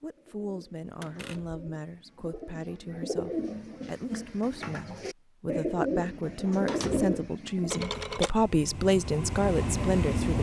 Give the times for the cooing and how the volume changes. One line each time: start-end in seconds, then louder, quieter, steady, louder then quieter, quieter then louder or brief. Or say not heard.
0.1-7.8 louder.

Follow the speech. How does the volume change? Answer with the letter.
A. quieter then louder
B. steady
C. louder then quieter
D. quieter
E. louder
E.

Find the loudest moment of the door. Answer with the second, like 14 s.
7 s.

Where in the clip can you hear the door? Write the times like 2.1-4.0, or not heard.
1.0-1.6, 6.7-7.3.